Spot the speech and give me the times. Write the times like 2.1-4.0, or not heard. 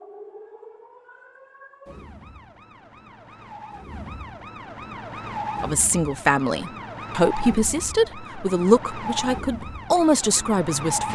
5.6-11.0.